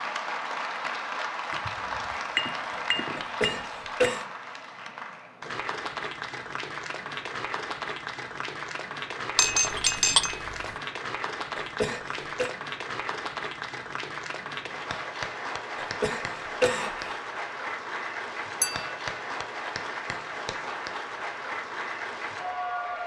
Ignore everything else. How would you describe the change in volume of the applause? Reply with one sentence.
The volume of the applause stays about the same.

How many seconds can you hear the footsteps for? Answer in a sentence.
You can't hear the footsteps here.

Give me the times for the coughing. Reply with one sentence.
The coughing can be heard from 3.1 to 4.2 s, from 11.6 to 12.5 s and from 15.8 to 17.1 s.